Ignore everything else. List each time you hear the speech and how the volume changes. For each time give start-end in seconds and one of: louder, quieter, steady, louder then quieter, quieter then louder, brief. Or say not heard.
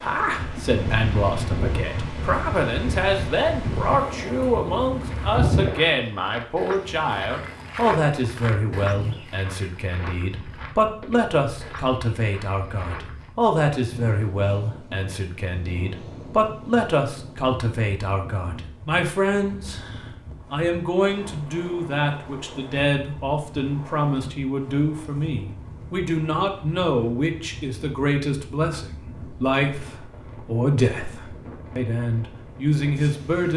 0.0-33.5 steady.